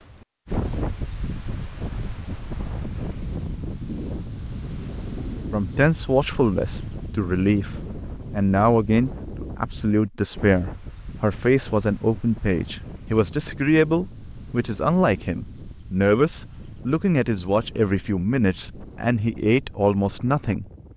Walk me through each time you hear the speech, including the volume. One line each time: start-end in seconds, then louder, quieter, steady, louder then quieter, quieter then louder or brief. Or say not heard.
5.5-7.7 brief
8.3-20.6 steady.